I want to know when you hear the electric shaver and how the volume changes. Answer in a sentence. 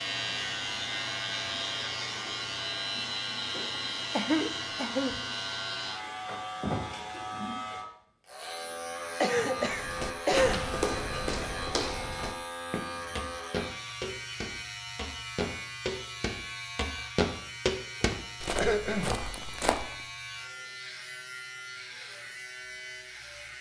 The electric shaver can be heard from 0.0 to 23.5 s, getting quieter.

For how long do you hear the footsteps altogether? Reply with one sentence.
The footsteps can be heard for 10 seconds in total.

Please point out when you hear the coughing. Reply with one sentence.
You can hear the coughing from 4.1 to 5.2 s, from 9.2 to 10.7 s and from 18.0 to 19.2 s.